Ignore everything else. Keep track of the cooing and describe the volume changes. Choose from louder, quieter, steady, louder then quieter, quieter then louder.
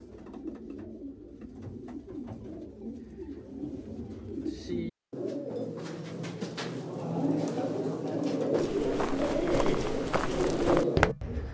louder.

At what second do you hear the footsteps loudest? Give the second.
11 s.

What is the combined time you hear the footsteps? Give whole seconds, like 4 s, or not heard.
3 s.